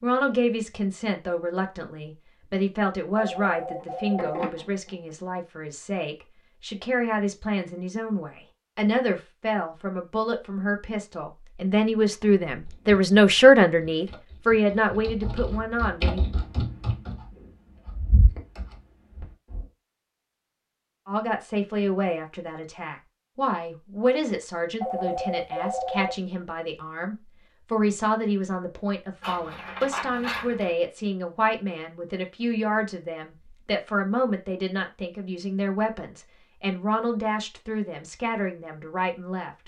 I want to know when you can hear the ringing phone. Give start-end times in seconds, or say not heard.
3.1-4.5, 24.8-26.1.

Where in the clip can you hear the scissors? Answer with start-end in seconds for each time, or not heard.
3.8-5.0, 29.2-30.8.